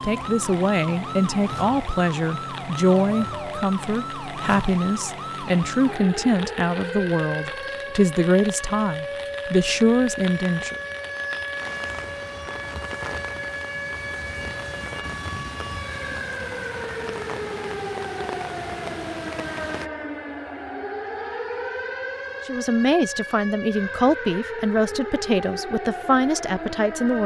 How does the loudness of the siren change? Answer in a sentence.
The loudness of the siren stays about the same.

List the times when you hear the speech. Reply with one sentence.
You can hear the speech from 0.0 to 10.8 s and from 22.4 to 27.2 s.